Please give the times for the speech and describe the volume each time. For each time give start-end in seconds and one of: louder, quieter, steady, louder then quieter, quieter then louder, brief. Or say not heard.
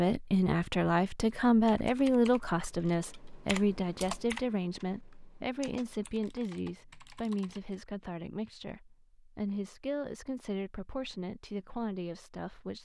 0.0-12.8 quieter.